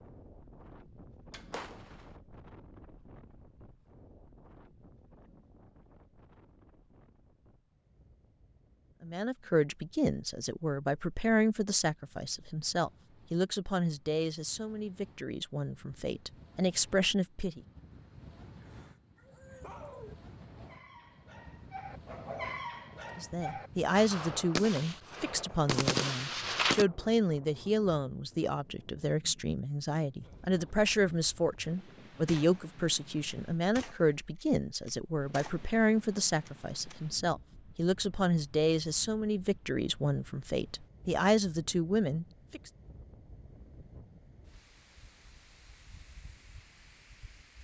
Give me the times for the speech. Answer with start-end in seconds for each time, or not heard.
9.0-17.6, 23.1-42.7.